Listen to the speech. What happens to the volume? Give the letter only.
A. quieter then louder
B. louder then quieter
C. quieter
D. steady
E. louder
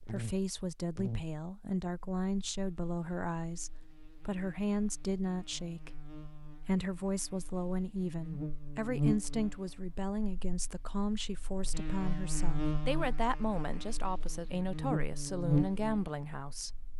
D.